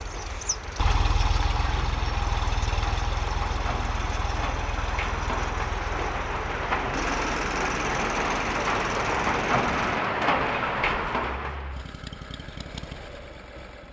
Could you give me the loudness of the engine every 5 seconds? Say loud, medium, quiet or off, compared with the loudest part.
loud, loud, medium.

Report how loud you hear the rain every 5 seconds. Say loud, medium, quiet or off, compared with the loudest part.
medium, loud, loud.